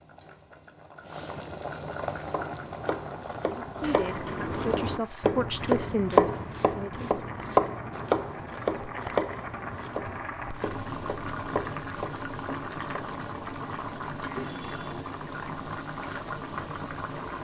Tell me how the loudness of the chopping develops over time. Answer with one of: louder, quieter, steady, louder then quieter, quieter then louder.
louder then quieter.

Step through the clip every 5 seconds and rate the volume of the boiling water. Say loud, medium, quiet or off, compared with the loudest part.
loud, medium, loud, loud.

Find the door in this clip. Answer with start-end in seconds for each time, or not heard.
3.8-5.0.